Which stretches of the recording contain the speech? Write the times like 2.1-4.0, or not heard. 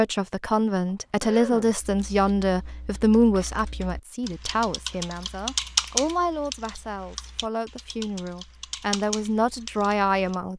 0.0-10.5.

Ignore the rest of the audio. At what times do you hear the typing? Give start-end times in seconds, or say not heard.
1.8-10.3.